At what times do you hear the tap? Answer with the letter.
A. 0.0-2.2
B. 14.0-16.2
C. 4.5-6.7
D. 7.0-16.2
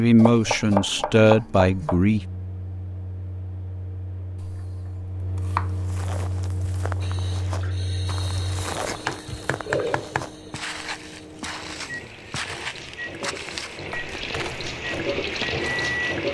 D.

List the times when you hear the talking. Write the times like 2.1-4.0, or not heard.
0.0-2.2.